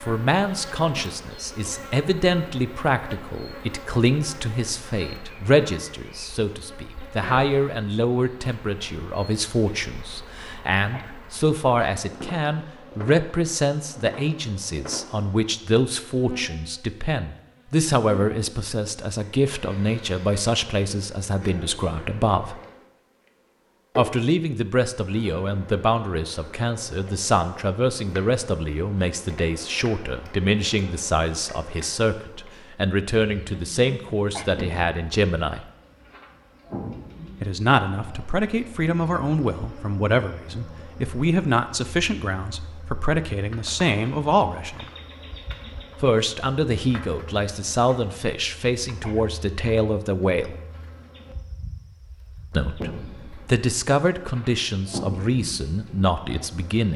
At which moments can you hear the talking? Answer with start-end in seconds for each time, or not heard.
0.0-22.6, 23.9-35.6, 37.4-44.9, 46.0-50.5, 52.5-56.9.